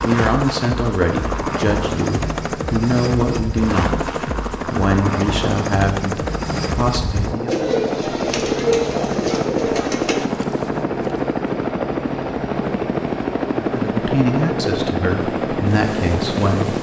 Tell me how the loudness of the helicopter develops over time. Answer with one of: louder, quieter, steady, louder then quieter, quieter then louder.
steady.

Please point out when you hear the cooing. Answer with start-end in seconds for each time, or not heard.
7.5-10.2.